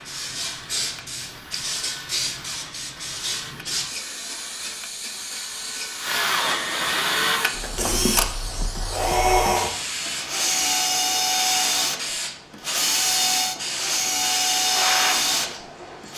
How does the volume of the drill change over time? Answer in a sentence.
The loudness of the drill goes up.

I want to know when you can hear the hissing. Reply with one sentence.
You can hear the hissing from 0.0 to 16.1 s.